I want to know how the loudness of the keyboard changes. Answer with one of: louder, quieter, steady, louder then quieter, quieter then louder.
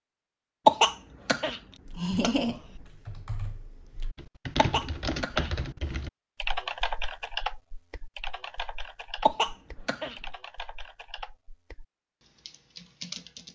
louder then quieter.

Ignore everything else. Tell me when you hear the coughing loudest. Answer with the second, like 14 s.
1 s.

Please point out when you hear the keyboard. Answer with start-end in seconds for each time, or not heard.
1.8-13.5.